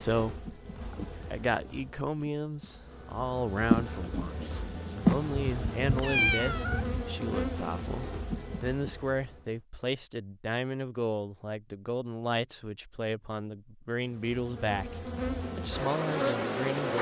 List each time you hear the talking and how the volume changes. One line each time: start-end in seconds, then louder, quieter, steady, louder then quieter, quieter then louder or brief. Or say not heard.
0.0-16.9 steady.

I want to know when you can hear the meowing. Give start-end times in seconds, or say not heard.
5.4-7.0.